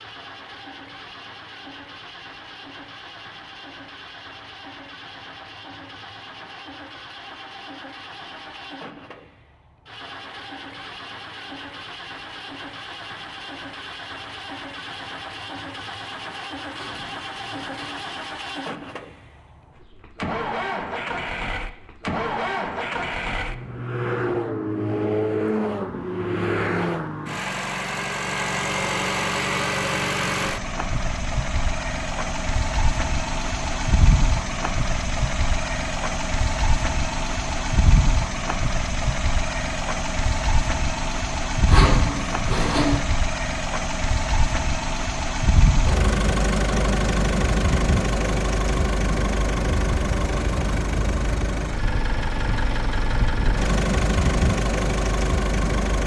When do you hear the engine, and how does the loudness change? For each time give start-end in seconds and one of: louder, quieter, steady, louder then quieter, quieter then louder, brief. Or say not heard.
0.0-56.0 louder.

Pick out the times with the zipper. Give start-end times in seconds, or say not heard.
16.7-18.1, 41.6-43.0.